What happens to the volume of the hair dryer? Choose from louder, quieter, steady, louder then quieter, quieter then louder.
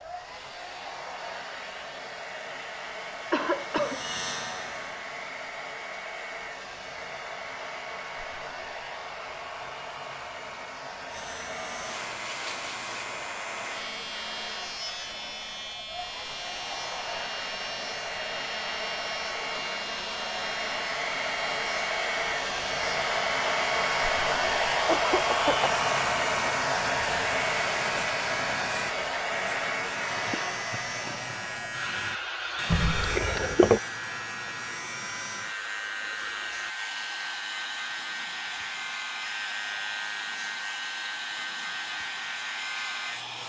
louder then quieter.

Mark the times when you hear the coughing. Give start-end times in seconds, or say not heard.
3.3-4.0, 24.9-25.7, 32.7-33.8.